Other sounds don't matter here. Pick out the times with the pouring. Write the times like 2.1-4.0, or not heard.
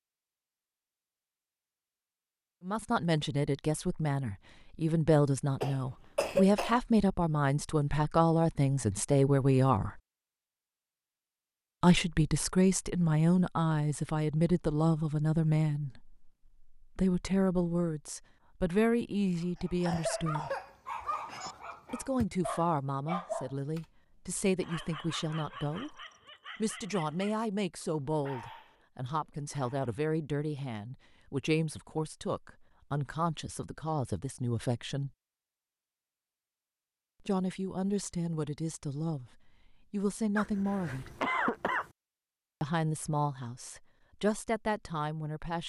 not heard.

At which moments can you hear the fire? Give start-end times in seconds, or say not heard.
not heard.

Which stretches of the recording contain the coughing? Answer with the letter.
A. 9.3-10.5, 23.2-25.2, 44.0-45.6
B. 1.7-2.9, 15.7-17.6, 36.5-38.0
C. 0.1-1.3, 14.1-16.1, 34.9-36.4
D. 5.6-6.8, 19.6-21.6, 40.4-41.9
D.